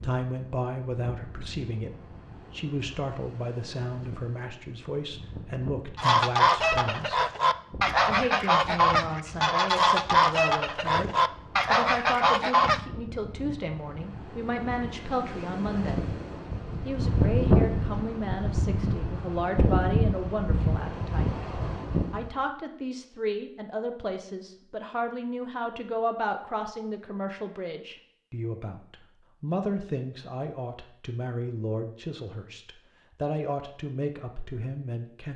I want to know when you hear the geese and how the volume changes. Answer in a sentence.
You can hear the geese from 6.0 to 12.8 s, at a steady volume.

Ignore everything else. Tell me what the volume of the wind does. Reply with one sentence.
The volume of the wind goes up.